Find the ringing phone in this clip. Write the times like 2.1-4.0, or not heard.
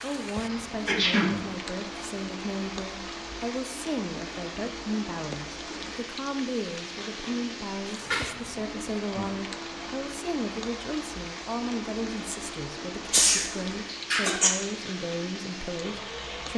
not heard.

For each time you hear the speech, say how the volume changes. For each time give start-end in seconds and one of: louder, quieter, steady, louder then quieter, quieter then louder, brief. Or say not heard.
0.0-16.5 steady.